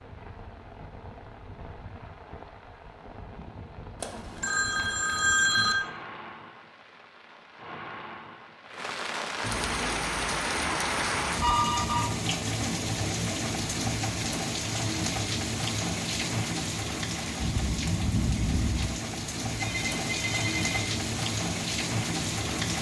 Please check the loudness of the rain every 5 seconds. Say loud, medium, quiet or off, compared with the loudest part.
quiet, medium, loud, loud, loud.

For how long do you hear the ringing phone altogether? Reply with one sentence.
The ringing phone can be heard for 4 seconds in total.